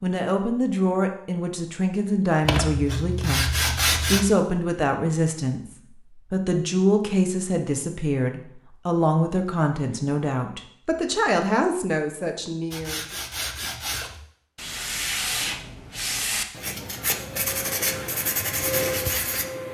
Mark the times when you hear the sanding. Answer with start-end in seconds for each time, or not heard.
2.5-4.2, 12.7-19.4.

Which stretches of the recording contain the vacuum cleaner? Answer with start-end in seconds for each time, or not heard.
17.4-19.6.